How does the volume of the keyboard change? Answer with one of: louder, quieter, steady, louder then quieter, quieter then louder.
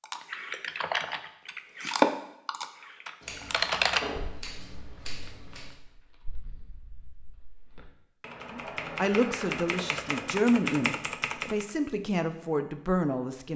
quieter then louder.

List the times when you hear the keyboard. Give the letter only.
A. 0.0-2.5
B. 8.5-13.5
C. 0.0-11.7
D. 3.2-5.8
C.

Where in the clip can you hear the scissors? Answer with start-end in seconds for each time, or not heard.
3.2-5.8.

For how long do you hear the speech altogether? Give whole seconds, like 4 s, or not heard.
5 s.